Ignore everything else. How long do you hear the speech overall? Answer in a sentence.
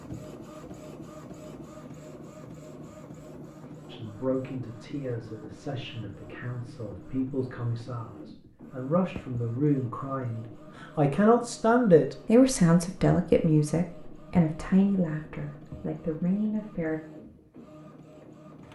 The speech can be heard for 13 seconds in total.